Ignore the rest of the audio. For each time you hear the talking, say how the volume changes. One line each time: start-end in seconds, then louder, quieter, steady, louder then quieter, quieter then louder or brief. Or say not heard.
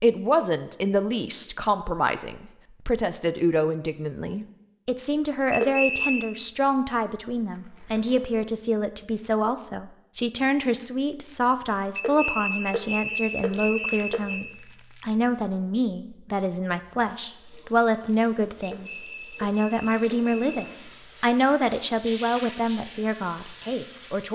0.0-24.3 steady.